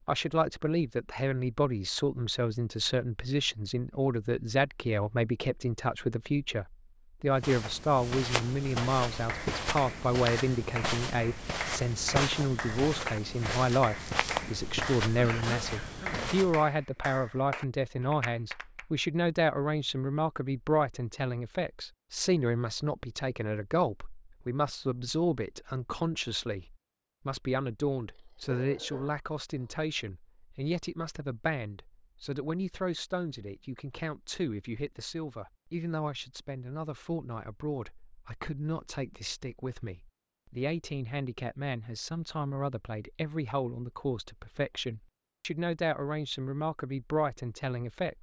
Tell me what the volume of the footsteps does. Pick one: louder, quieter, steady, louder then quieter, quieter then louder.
steady.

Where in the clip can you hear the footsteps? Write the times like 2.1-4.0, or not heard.
7.3-16.6.